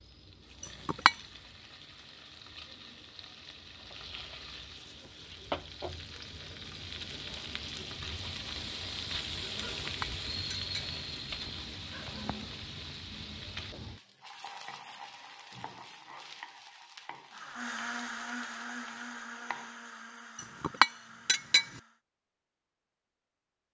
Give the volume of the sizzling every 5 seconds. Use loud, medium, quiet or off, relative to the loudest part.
medium, loud, loud, medium, off.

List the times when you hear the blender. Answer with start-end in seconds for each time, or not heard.
17.3-22.0.